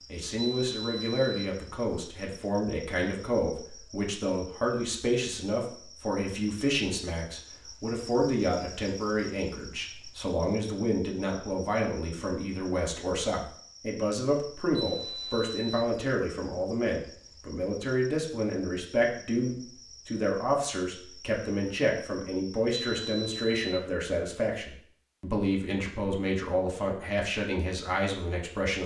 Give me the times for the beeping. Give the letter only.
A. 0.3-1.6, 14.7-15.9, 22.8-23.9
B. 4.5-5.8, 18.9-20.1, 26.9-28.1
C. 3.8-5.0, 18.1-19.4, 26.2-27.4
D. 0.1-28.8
A.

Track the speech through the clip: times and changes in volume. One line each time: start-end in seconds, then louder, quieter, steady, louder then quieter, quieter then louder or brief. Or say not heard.
0.1-28.8 steady.